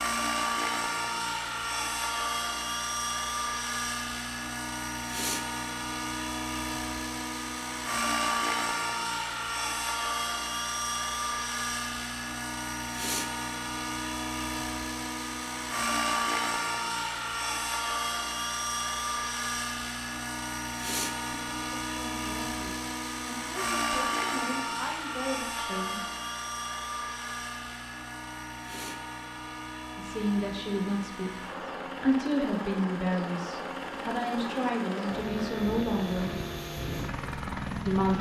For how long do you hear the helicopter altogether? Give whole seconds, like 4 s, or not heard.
38 s.